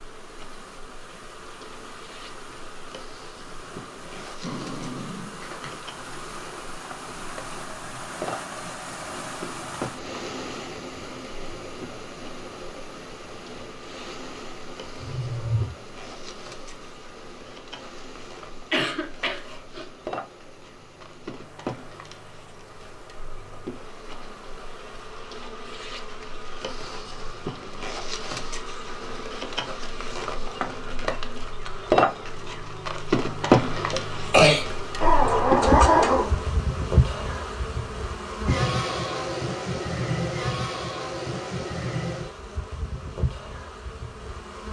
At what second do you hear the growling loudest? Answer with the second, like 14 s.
36 s.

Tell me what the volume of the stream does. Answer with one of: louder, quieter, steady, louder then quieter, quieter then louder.
louder then quieter.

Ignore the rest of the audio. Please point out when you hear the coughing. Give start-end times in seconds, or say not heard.
18.7-19.9, 33.9-34.6.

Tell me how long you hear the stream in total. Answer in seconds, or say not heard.
25 s.